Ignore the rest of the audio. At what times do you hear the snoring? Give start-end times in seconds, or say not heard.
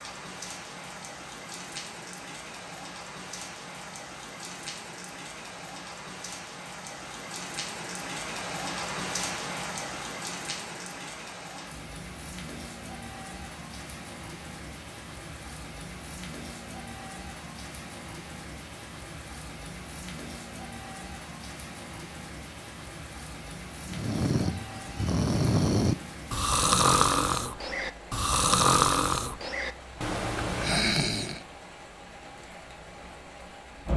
23.9-31.4.